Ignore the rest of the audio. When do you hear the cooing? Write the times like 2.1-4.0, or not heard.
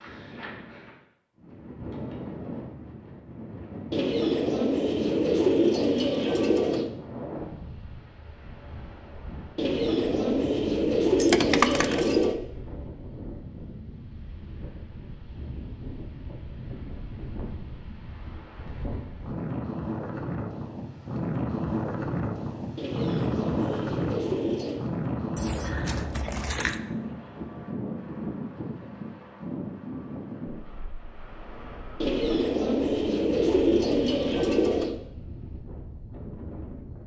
3.9-6.9, 9.6-12.3, 22.8-24.9, 32.0-35.0.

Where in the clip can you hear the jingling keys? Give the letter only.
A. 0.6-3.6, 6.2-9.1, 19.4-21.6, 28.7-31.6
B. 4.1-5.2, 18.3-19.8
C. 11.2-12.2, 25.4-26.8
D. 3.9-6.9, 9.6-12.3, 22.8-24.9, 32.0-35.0
C.